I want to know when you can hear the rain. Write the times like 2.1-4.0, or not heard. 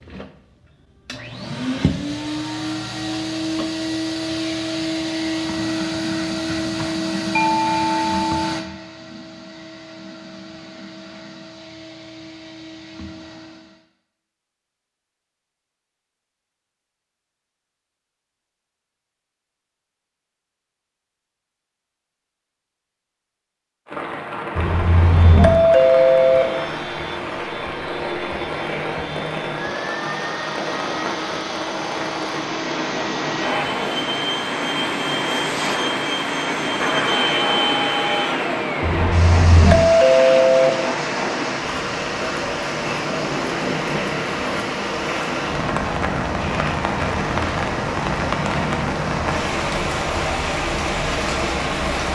23.9-52.1.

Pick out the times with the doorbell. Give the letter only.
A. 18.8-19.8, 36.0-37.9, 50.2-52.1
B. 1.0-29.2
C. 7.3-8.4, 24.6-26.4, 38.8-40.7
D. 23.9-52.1
C.